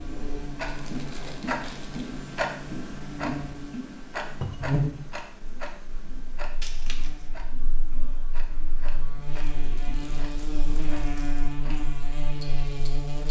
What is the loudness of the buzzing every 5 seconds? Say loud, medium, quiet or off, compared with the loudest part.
loud, medium, loud.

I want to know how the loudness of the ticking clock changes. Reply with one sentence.
The loudness of the ticking clock goes down.